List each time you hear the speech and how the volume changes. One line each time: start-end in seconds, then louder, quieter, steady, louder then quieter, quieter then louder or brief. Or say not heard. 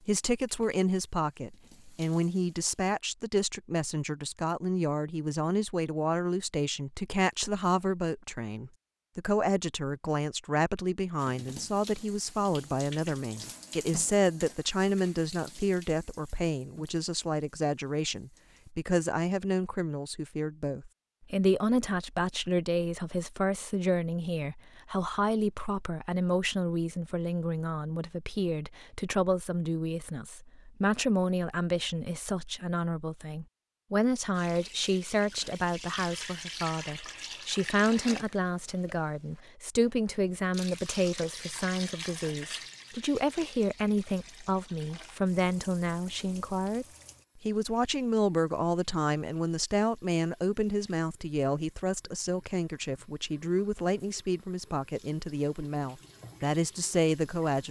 0.1-57.6 steady.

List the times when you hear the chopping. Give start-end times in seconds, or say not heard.
not heard.